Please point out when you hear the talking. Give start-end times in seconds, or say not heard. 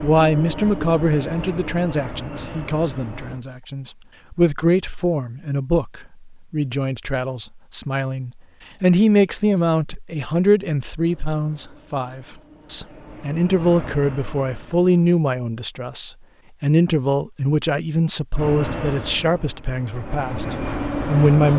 0.0-21.5.